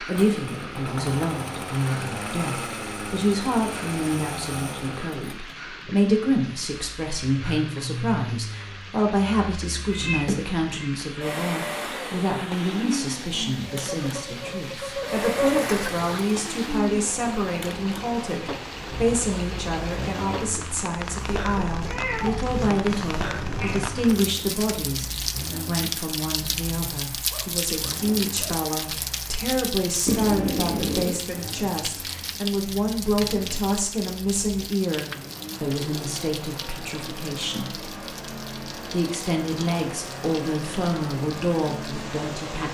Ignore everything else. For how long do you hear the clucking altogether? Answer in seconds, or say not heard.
3 s.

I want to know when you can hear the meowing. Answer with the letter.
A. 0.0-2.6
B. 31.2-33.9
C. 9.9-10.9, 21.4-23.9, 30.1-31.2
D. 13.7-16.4
C.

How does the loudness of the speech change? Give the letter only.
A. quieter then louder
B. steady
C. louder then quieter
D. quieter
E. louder
B.